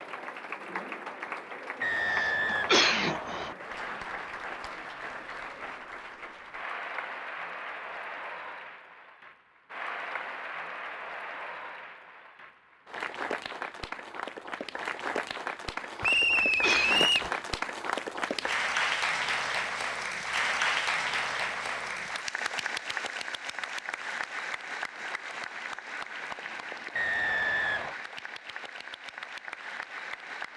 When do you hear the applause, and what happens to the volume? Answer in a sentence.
The applause can be heard from 0.0 to 30.5 s, getting louder then quieter.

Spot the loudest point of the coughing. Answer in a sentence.
The volume of the coughing peaks at 3 seconds.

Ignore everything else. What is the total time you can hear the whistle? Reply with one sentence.
You can hear the whistle for 4 seconds altogether.